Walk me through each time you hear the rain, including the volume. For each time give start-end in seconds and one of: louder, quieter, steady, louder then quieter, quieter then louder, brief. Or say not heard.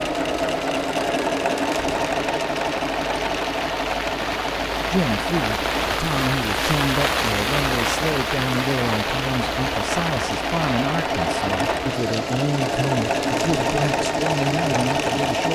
0.0-15.4 louder then quieter.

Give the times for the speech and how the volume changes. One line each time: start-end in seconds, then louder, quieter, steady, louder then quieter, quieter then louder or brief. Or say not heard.
4.8-15.4 steady.